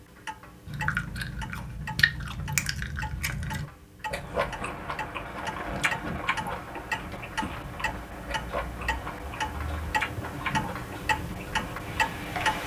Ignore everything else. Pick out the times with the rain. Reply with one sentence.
You can hear the rain from 4.1 to 12.6 s.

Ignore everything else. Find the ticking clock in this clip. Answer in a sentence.
You can hear the ticking clock from 0.0 to 12.6 s.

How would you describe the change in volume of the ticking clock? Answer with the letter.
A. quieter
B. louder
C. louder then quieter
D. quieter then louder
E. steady
B.